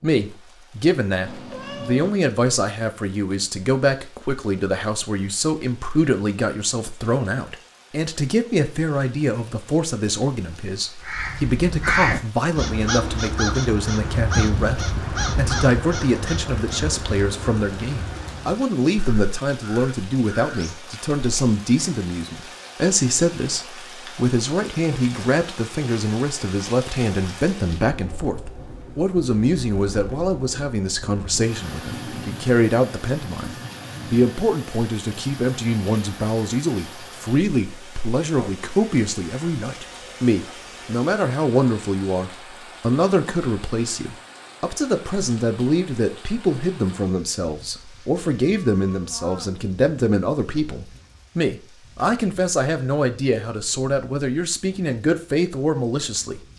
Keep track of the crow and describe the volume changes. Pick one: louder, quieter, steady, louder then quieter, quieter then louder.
quieter.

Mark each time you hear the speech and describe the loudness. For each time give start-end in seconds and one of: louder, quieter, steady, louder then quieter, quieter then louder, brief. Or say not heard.
0.0-56.4 steady.